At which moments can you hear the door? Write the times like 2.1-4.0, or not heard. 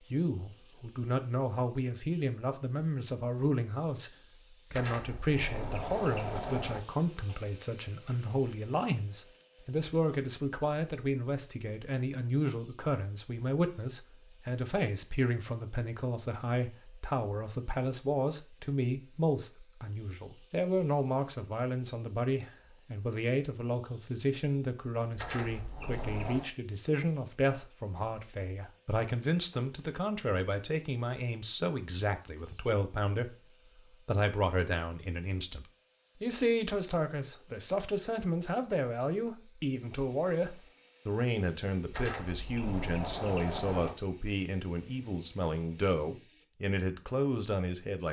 4.7-6.8, 25.1-26.5, 41.9-44.0.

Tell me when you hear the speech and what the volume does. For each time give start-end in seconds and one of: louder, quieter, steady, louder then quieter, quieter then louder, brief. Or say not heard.
0.1-48.0 steady.